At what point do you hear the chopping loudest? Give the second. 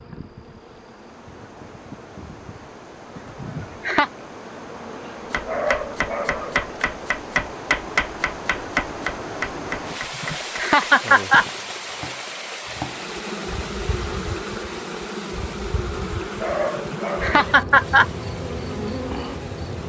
8 s.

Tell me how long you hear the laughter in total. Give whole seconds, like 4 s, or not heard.
4 s.